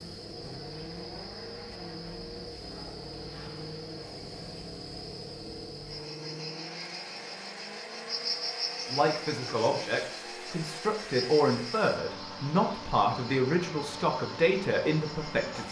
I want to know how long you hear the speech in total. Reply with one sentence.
You can hear the speech for 7 seconds altogether.